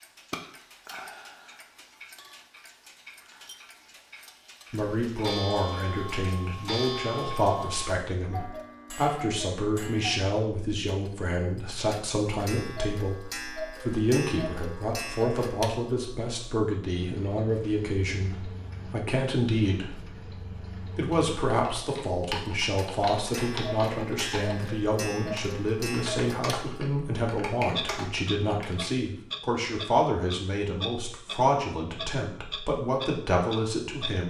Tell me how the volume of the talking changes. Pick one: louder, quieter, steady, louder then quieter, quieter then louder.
steady.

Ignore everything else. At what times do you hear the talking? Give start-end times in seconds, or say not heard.
4.7-13.2, 13.8-34.2.